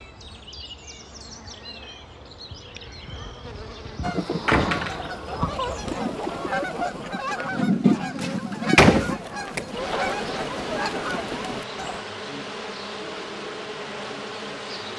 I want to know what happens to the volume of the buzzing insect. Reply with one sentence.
The loudness of the buzzing insect goes up, then down.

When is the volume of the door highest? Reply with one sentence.
The loudest moment of the door is at 9 seconds.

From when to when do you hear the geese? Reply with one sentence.
The geese can be heard from 4.0 to 12.0 s.